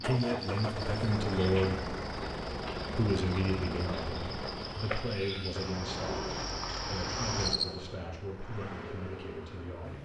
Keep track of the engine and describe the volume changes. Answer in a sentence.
The loudness of the engine goes down.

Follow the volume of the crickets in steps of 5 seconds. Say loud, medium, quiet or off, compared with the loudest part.
medium, loud.